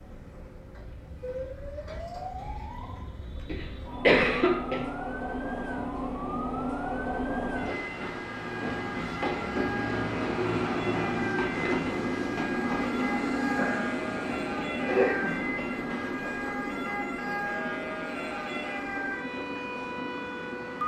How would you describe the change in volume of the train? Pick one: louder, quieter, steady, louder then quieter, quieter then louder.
louder then quieter.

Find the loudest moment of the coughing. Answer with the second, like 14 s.
4 s.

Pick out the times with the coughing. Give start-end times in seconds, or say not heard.
3.5-4.8, 13.6-15.3.